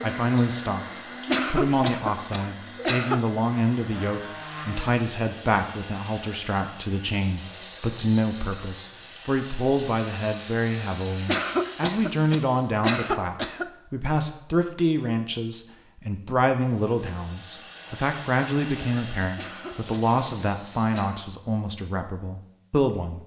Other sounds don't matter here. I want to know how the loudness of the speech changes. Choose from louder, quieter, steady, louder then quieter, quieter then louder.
steady.